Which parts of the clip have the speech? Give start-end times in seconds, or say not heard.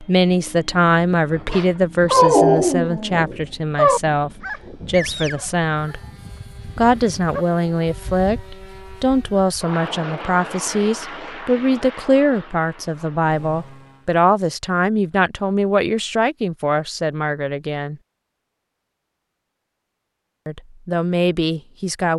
0.0-6.0, 6.8-17.9, 20.4-22.1.